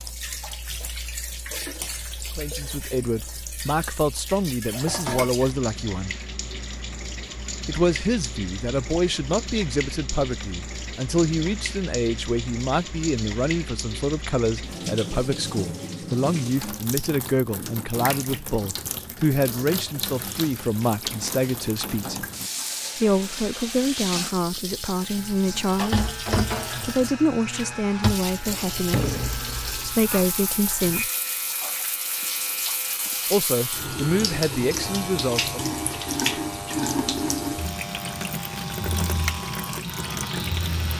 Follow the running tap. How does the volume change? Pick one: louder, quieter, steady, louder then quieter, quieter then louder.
louder.